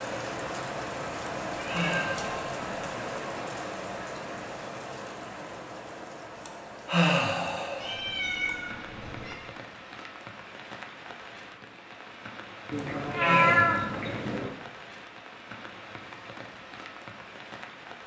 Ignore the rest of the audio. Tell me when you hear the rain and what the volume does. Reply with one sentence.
The rain can be heard from 0.0 to 18.0 s, getting quieter.